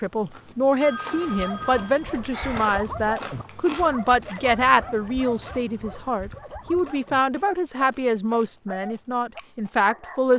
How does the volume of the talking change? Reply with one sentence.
The loudness of the talking stays about the same.